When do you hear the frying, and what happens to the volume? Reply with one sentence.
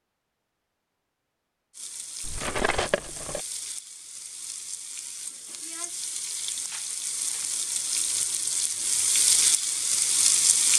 You can hear the frying from 1.7 to 10.7 s, getting louder.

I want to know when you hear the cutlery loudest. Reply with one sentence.
The volume of the cutlery peaks at 3 seconds.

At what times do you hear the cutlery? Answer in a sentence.
The cutlery can be heard from 2.2 to 3.4 s and from 6.5 to 7.6 s.